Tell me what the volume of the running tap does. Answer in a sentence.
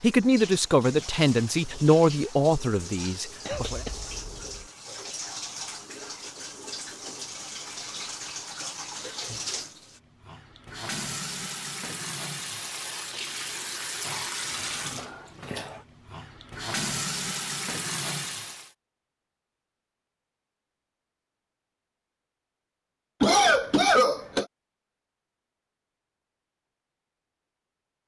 The volume of the running tap goes up.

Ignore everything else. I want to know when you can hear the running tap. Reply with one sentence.
You can hear the running tap from 0.0 to 18.7 s.